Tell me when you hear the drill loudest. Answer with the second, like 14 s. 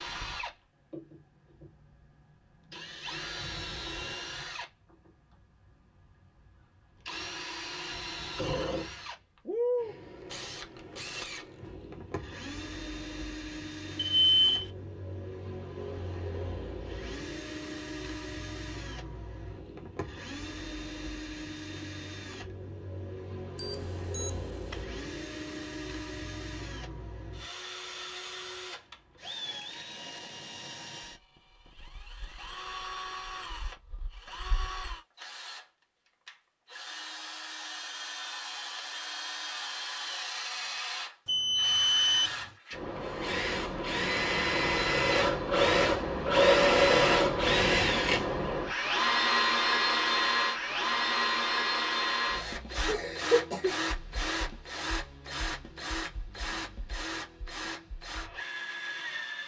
47 s.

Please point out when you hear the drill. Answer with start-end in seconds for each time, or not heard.
0.0-59.4.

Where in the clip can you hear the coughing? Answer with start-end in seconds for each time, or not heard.
52.9-53.8.